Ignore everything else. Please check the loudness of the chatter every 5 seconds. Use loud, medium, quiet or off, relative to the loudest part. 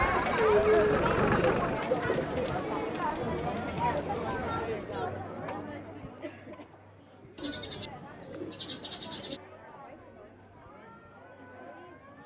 loud, quiet, quiet.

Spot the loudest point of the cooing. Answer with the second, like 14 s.
2 s.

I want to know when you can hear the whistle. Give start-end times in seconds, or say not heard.
not heard.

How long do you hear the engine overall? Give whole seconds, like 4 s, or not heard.
2 s.